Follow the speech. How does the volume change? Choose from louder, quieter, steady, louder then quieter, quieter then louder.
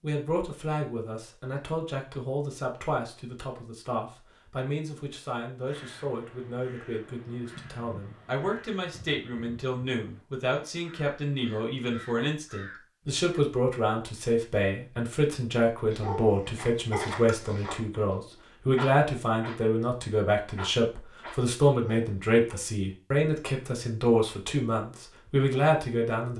louder.